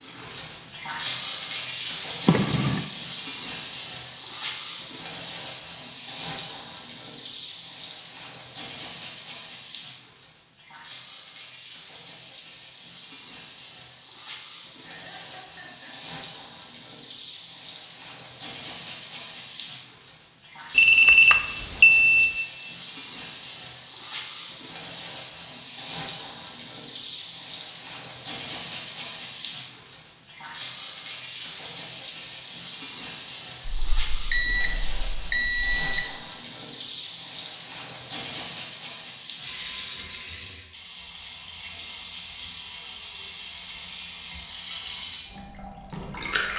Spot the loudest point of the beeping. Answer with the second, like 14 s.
21 s.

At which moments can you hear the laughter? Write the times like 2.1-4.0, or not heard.
14.8-16.1.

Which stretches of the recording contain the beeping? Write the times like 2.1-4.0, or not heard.
2.2-2.9, 20.8-22.4, 33.7-36.0.